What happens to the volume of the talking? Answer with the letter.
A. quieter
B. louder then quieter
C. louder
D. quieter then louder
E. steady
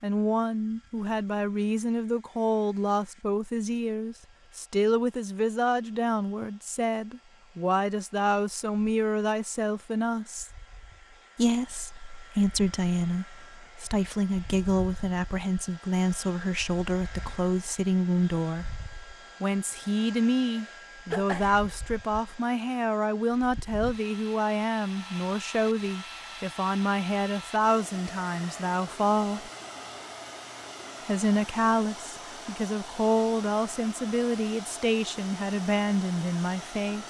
E.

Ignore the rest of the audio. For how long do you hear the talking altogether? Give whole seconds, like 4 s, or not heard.
34 s.